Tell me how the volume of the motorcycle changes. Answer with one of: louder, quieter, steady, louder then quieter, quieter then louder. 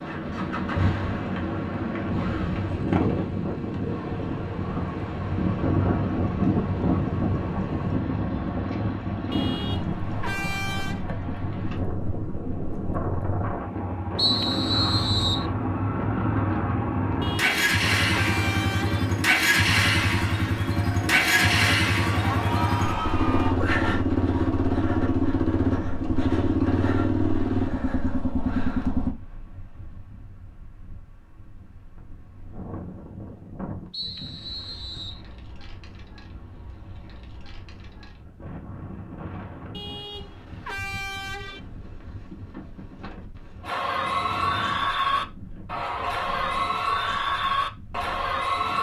louder.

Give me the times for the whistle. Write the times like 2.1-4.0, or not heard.
14.2-15.4, 33.9-35.2.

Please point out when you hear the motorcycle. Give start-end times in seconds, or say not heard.
0.0-29.1.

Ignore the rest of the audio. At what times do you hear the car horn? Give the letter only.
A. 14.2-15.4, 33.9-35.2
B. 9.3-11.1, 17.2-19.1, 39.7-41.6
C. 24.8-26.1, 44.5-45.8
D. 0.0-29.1
B.